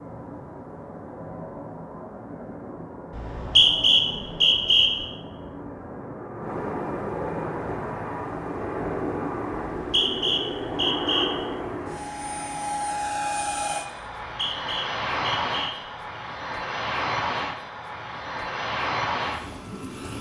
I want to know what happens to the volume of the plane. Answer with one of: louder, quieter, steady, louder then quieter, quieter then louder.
louder.